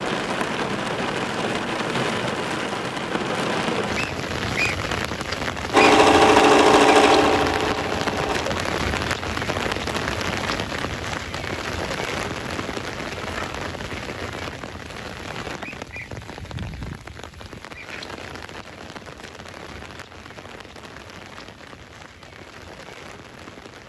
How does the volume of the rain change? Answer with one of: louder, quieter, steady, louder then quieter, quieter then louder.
quieter.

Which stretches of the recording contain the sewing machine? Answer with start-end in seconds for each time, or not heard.
5.7-8.7.